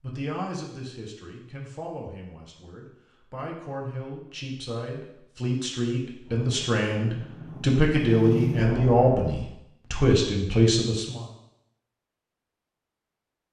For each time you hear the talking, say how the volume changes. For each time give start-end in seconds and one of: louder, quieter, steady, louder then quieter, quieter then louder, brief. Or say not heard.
0.0-11.2 louder.